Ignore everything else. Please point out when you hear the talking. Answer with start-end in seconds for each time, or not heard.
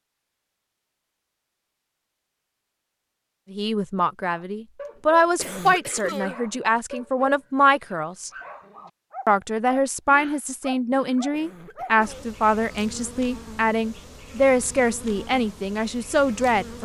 3.5-8.3, 9.2-16.8.